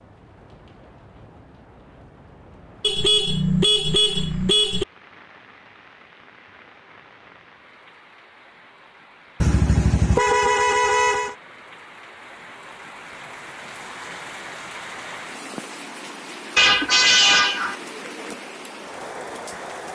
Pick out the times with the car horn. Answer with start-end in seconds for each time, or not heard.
2.8-4.8, 9.4-11.3, 16.6-17.8.